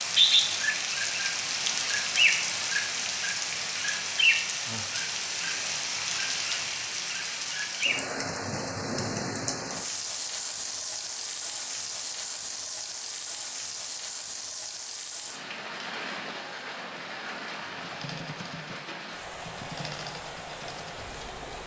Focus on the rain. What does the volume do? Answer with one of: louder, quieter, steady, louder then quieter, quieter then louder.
quieter.